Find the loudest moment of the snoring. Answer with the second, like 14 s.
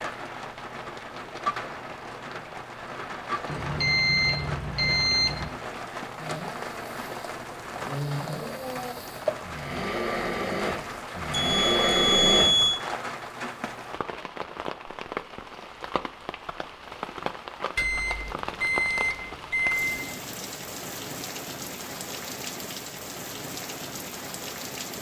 12 s.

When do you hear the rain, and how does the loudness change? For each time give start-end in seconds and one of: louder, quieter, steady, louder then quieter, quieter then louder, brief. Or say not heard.
0.0-24.9 steady.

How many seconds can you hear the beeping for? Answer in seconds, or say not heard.
6 s.